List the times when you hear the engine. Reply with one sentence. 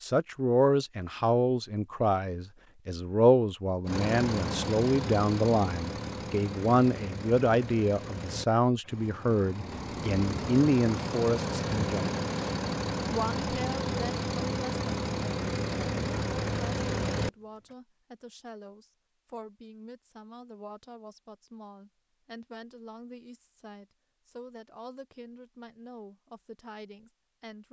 You can hear the engine from 3.9 to 17.3 s.